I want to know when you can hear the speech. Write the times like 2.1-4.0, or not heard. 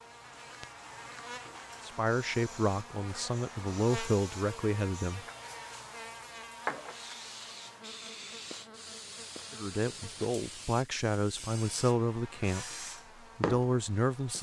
1.8-5.2, 9.5-14.3.